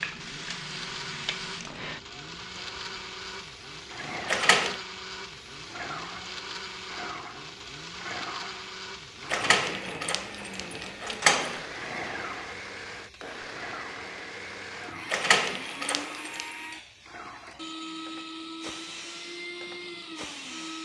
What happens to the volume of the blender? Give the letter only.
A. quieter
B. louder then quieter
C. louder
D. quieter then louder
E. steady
E.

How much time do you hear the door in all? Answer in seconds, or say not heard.
4 s.